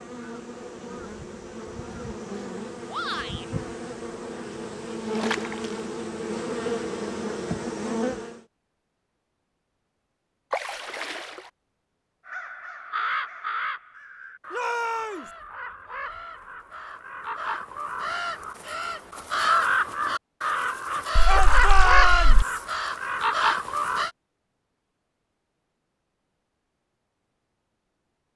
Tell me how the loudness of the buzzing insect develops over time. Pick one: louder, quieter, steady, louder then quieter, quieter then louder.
louder.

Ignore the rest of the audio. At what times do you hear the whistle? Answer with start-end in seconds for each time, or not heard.
not heard.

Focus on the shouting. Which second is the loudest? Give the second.
22 s.